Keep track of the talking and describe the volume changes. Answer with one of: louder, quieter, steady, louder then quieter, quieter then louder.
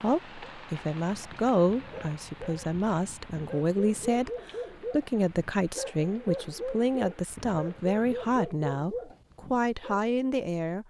steady.